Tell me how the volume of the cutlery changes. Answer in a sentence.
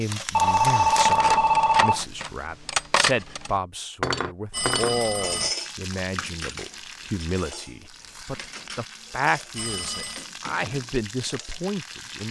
The loudness of the cutlery goes up, then down.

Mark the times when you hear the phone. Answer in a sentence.
You can hear the phone from 0.3 to 2.0 s, from 4.5 to 5.5 s and from 9.6 to 10.2 s.